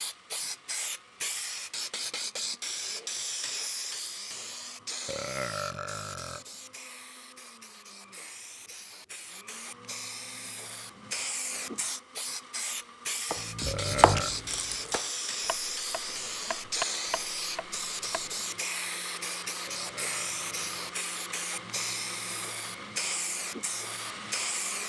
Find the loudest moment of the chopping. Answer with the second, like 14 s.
14 s.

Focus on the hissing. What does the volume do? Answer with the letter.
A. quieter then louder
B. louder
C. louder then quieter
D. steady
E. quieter
A.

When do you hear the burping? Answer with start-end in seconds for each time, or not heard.
5.0-6.5, 13.7-14.3, 19.6-20.9.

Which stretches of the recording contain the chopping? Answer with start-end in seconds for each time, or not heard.
13.3-18.4.